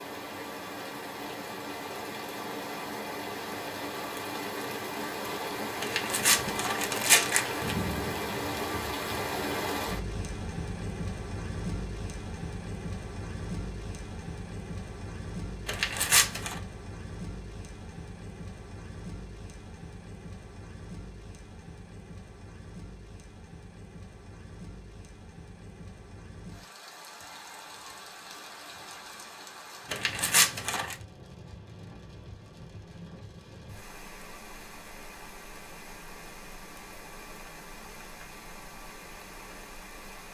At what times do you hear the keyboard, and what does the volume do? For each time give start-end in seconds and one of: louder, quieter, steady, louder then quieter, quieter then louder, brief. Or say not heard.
not heard.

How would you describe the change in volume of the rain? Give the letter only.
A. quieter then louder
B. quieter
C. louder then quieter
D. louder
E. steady
B.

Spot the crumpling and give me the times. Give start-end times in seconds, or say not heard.
5.8-7.8, 15.7-16.6, 29.9-30.9.